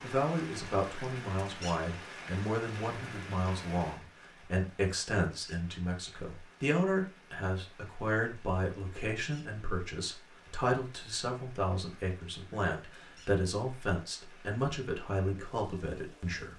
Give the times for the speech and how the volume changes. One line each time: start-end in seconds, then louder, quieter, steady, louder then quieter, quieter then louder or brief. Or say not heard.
0.0-16.5 steady.